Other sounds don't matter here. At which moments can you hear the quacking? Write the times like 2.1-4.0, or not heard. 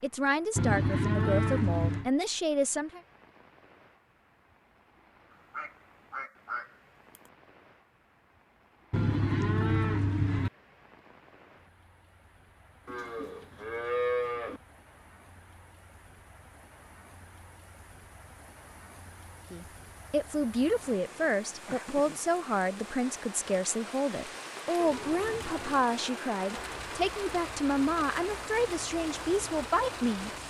5.5-7.2.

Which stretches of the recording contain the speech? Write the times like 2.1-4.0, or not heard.
0.0-3.0, 19.5-30.3.